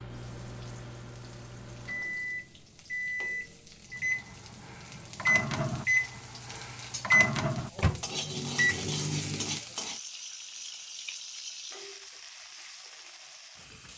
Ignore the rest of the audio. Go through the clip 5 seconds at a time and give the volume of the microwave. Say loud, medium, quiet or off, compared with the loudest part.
medium, loud, off.